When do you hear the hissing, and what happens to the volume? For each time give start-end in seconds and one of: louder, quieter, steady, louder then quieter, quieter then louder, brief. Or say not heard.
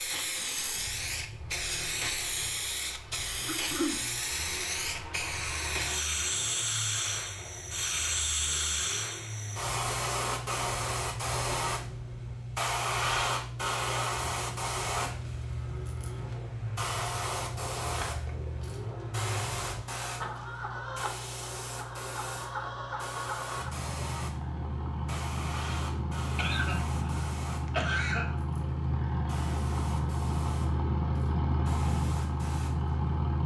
0.0-33.4 quieter.